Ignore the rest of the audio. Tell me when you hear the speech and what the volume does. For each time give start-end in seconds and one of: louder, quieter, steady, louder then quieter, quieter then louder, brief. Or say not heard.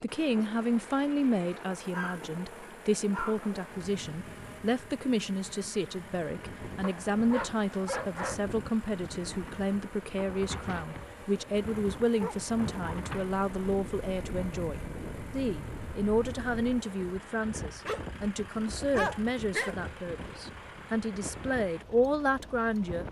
0.0-23.0 steady.